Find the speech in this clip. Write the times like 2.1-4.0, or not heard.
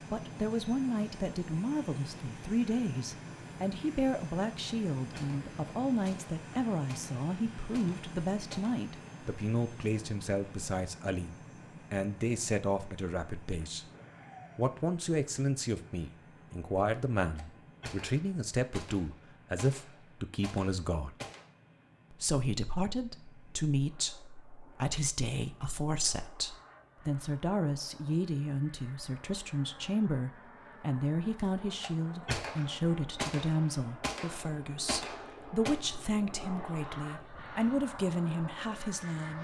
0.1-13.8, 14.6-21.1, 22.1-39.3.